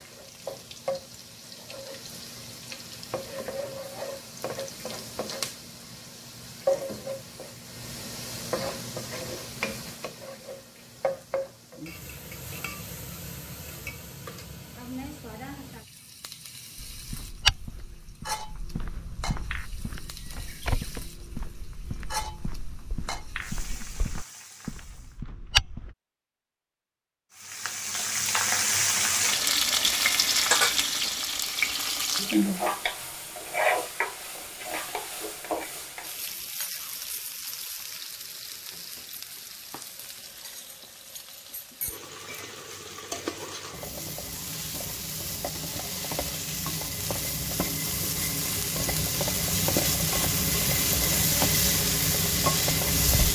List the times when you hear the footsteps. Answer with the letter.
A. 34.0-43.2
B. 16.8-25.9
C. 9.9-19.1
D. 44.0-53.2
B.